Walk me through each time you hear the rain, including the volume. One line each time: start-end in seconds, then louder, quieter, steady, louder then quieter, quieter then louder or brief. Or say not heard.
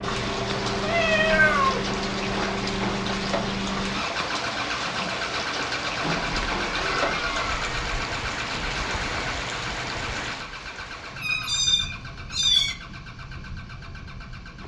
0.0-14.6 quieter.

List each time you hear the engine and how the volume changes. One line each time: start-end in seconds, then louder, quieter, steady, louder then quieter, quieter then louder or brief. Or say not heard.
0.0-14.6 quieter.